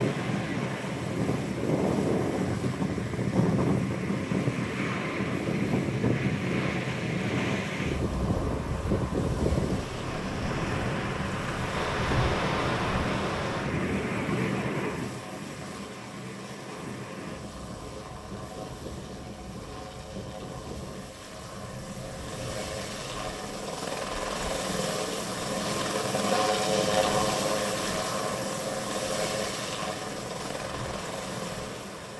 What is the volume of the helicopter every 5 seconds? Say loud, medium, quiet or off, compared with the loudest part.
quiet, quiet, quiet, quiet, medium, loud, medium.